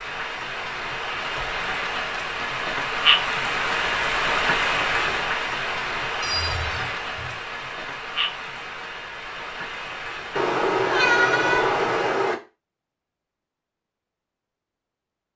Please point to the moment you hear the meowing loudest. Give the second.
11 s.